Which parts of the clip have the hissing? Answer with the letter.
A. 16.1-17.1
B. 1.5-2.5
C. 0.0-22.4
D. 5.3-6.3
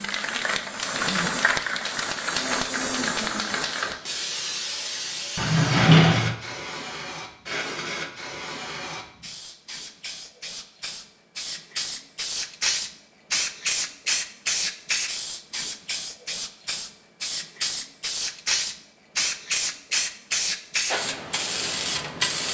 C.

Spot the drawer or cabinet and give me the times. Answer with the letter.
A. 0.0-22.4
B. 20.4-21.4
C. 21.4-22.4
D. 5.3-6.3
D.